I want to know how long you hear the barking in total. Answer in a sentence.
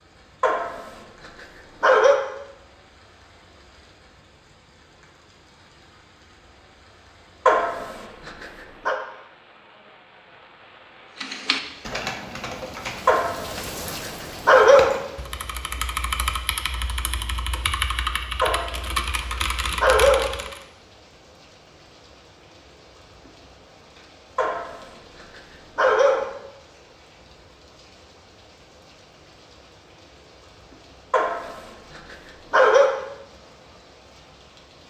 You can hear the barking for 11 seconds altogether.